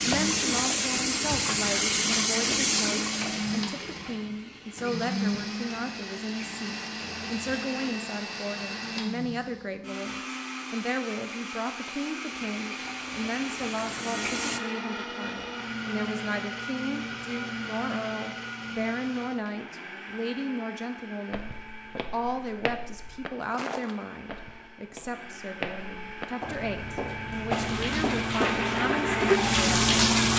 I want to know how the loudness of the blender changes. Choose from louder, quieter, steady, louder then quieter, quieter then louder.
quieter.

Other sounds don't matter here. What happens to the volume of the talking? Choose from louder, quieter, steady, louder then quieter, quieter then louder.
steady.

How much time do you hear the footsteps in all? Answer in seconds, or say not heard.
7 s.